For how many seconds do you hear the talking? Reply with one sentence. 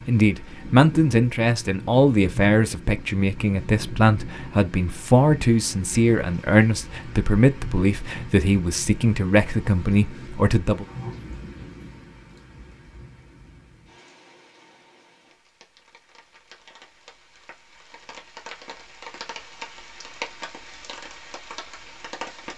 You can hear the talking for 11 seconds altogether.